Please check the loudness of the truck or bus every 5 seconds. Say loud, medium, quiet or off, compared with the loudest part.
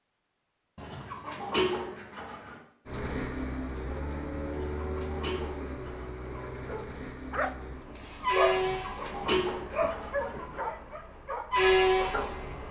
medium, medium, loud.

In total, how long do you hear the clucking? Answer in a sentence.
The clucking can be heard for 6 seconds in total.